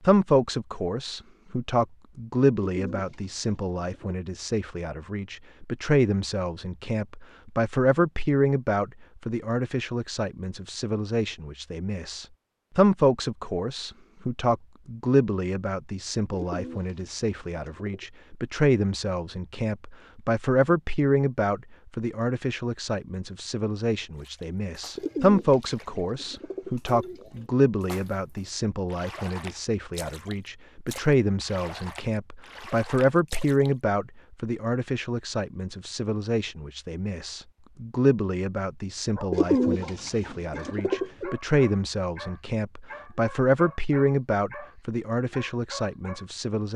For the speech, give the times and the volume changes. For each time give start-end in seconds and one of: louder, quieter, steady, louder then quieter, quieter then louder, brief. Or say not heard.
0.0-46.7 steady.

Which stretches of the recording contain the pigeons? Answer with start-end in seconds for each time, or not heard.
2.5-4.2, 16.3-18.1, 24.9-27.4, 39.3-41.4.